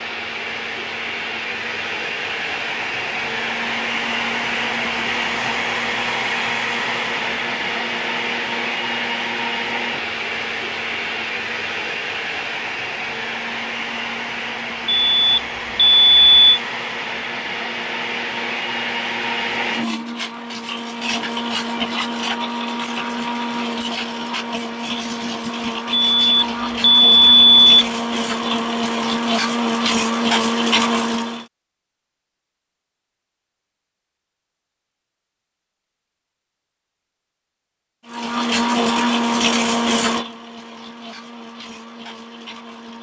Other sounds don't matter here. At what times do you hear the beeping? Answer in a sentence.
You can hear the beeping from 14.8 to 16.6 s and from 26.1 to 27.9 s.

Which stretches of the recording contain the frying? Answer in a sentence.
The frying can't be heard in this clip.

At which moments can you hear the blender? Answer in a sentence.
The blender can be heard from 0.0 to 31.4 s and from 38.0 to 42.9 s.